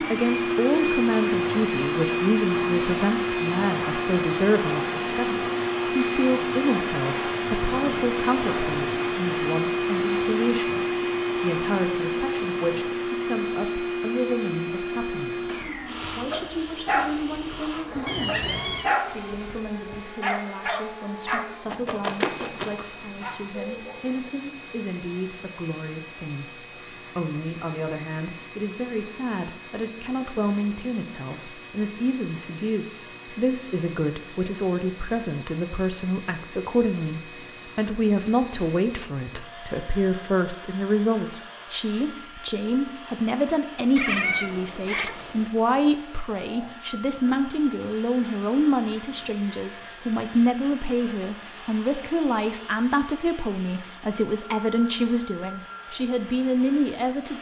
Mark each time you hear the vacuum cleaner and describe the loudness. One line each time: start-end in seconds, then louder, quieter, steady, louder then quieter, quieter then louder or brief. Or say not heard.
0.0-57.3 quieter.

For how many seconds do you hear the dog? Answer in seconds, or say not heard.
9 s.